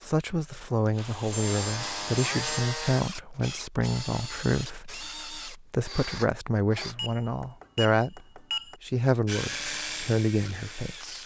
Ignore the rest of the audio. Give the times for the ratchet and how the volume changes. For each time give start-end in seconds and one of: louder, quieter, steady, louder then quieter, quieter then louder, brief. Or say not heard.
not heard.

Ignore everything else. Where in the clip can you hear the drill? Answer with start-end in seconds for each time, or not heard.
0.0-7.0, 9.2-11.2.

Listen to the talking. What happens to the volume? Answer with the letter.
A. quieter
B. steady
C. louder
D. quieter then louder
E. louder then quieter
B.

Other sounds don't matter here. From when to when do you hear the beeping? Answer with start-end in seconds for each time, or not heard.
1.3-2.6, 6.8-8.8.